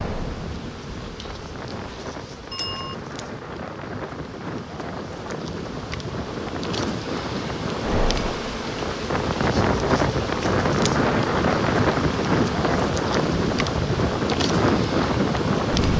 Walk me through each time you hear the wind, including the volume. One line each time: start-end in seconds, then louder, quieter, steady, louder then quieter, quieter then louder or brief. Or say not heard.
0.0-15.9 louder.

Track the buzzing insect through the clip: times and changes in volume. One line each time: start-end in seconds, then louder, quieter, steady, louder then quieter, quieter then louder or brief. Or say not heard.
0.0-15.9 louder.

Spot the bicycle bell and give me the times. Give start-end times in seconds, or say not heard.
2.5-3.0.